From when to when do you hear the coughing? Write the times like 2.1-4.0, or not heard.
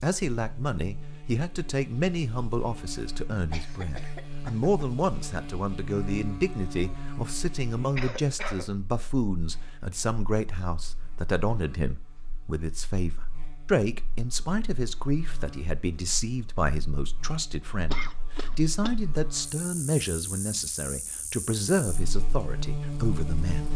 3.5-4.9, 8.0-8.7, 17.9-19.0.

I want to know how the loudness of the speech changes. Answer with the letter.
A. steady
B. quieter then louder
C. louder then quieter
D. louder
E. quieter
A.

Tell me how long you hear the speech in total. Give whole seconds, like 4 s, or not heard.
24 s.